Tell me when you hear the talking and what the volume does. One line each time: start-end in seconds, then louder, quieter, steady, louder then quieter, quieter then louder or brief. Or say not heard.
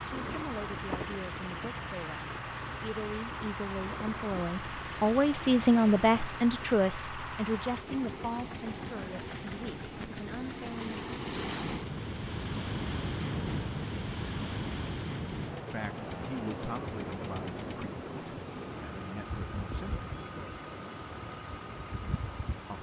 0.0-11.0 louder then quieter
15.7-20.1 quieter then louder.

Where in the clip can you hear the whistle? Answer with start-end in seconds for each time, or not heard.
not heard.